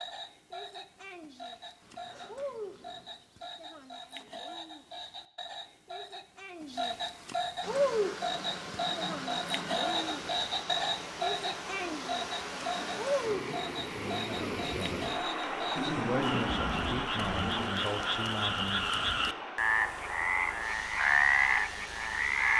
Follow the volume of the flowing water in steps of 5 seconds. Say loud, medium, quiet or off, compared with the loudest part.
off, loud, loud, loud, medium.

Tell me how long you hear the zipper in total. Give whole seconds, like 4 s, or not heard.
4 s.